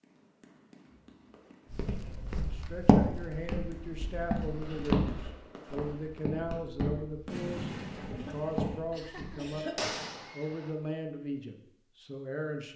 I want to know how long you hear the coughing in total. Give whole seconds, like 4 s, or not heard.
2 s.